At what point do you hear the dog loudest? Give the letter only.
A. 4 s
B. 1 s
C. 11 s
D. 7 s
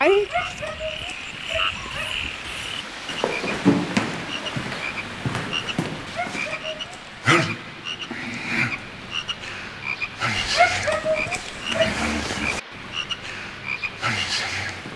C.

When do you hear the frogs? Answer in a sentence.
The frogs can be heard from 0.0 to 14.9 s.